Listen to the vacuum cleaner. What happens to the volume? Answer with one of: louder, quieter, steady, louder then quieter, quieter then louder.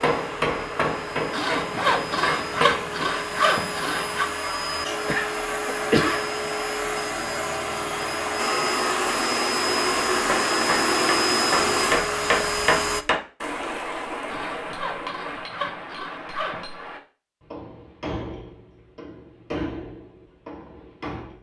louder.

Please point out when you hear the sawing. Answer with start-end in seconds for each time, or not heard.
1.3-4.3, 14.2-16.8.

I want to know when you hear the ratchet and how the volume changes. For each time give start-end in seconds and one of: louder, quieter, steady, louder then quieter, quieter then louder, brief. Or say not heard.
not heard.